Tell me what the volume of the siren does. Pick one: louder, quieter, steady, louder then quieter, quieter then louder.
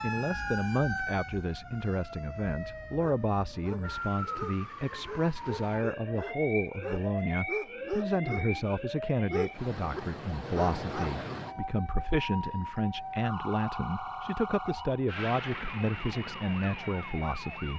steady.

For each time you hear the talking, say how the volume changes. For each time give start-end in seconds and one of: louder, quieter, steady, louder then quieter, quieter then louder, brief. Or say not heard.
0.0-17.7 steady.